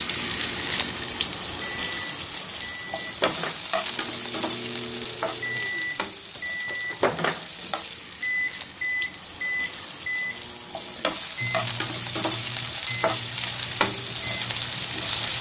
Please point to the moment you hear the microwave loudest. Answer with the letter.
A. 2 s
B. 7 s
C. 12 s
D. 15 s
B.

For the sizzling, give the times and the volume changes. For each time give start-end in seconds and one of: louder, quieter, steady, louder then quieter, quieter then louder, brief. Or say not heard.
0.0-15.3 quieter then louder.